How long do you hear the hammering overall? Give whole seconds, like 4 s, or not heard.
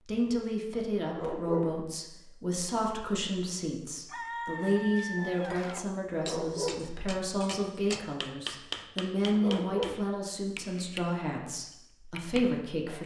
8 s.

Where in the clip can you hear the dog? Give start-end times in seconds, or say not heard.
1.1-1.8, 6.2-6.9, 9.3-10.1.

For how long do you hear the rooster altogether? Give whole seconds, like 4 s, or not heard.
2 s.